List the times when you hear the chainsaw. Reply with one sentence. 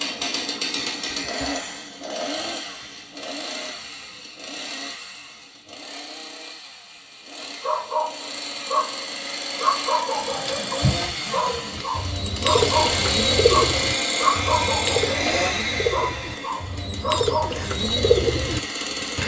The chainsaw can be heard from 0.0 to 19.2 s.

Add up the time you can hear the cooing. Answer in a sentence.
You can hear the cooing for 9 seconds altogether.